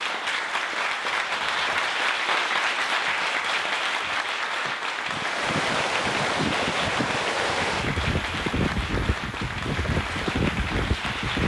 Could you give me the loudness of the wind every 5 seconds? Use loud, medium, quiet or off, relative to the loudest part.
off, loud, loud.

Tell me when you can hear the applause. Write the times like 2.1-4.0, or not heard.
0.0-11.4.